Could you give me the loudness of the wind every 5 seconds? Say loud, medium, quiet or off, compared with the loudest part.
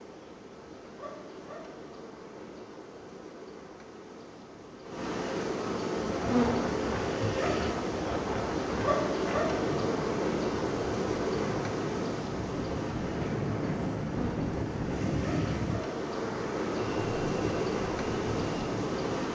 off, loud, loud, loud.